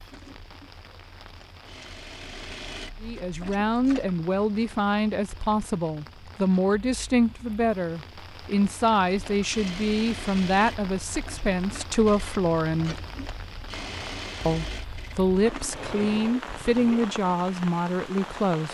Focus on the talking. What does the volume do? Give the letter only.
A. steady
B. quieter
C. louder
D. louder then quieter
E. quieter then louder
A.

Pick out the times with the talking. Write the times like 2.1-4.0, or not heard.
3.0-12.9, 14.4-18.6.